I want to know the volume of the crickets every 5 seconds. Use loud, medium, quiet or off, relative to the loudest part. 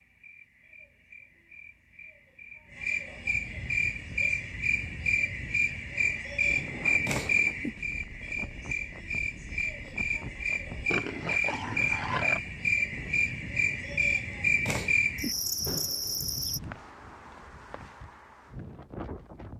medium, loud, loud, loud.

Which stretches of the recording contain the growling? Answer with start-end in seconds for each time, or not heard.
10.9-12.4.